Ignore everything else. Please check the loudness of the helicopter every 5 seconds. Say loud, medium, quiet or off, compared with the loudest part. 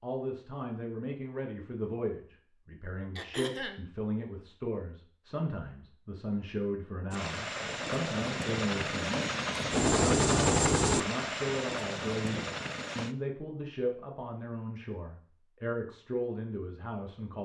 off, loud, loud, off.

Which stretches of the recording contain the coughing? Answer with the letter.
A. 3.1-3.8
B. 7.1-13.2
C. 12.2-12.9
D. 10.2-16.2
A.